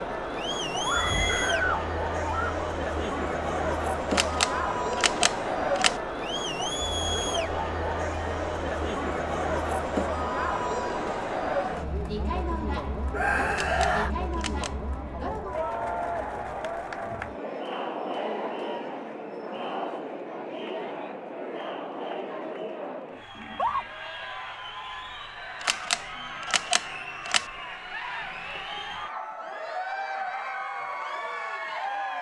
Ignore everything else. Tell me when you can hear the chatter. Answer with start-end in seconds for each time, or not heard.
0.0-32.1.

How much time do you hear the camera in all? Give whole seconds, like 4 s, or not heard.
5 s.